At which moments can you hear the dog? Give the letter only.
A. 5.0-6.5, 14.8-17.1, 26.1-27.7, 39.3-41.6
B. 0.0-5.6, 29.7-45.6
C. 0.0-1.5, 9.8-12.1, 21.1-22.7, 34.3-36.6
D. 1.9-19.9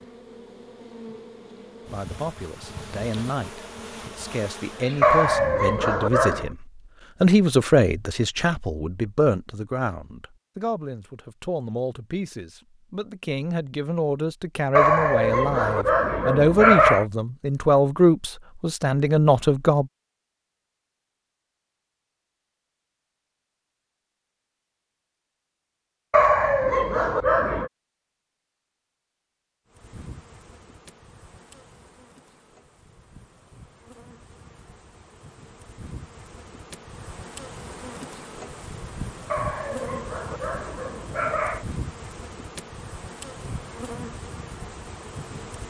A.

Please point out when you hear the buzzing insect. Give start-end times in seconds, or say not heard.
0.0-5.6, 29.7-45.6.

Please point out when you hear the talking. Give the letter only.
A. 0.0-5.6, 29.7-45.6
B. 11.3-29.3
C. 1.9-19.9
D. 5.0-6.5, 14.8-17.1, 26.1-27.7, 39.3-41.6
C.